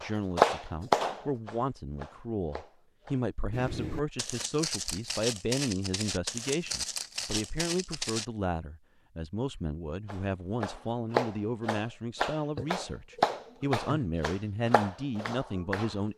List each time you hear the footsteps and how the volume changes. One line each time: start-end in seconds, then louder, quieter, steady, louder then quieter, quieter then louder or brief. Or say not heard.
3.5-8.2 steady.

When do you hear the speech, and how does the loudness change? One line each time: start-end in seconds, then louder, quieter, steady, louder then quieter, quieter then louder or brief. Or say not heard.
0.0-16.1 steady.